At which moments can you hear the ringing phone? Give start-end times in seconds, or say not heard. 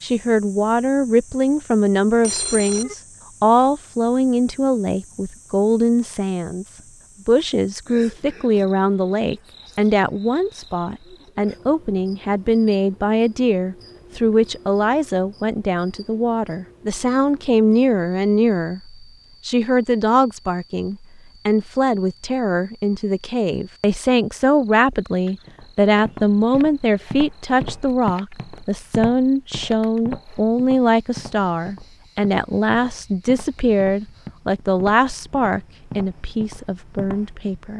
2.2-3.0.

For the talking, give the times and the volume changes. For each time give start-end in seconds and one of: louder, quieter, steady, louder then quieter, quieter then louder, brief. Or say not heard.
0.0-6.7 steady
7.2-37.7 steady.